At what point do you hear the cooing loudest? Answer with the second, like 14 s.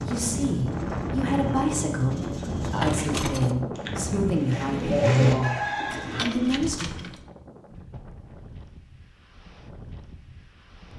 5 s.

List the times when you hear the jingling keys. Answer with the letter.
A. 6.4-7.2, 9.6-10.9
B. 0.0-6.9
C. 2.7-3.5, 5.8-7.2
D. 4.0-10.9
C.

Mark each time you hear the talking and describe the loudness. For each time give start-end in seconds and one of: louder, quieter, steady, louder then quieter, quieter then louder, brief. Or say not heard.
0.0-6.9 steady.